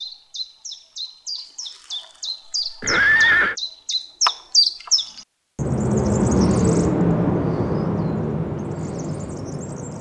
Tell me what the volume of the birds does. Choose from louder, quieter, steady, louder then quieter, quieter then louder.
louder then quieter.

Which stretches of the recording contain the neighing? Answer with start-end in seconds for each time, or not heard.
2.8-3.5.